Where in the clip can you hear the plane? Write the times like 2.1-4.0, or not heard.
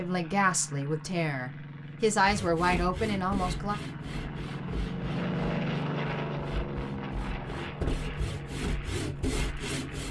0.0-10.0.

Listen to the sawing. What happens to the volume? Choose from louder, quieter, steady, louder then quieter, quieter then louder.
quieter then louder.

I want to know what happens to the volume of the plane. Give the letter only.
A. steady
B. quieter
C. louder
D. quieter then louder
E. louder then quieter
E.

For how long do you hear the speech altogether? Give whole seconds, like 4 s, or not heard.
4 s.